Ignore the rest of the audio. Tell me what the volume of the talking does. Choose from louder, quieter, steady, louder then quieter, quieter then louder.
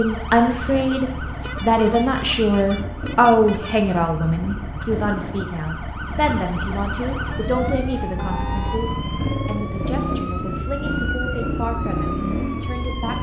quieter.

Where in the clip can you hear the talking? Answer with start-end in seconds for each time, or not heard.
0.0-13.1.